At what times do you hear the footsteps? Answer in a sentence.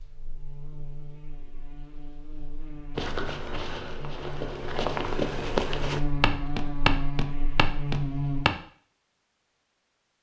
The footsteps can be heard from 3.0 to 8.6 s.